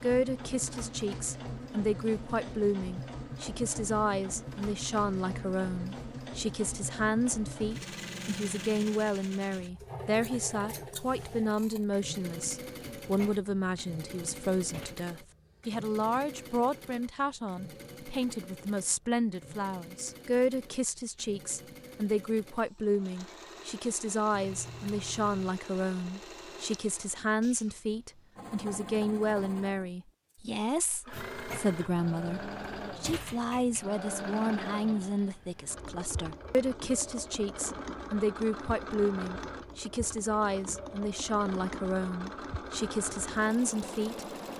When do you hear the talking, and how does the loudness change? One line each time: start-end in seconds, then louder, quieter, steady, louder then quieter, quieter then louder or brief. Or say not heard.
0.0-44.2 steady.